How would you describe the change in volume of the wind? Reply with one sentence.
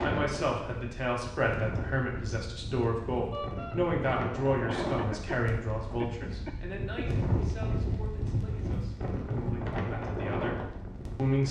The loudness of the wind goes up.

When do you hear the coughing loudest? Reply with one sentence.
The loudest moment of the coughing is at 5 seconds.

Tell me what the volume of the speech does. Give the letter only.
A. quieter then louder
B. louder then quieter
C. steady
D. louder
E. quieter
E.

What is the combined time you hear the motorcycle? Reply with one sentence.
The motorcycle can't be heard in this clip.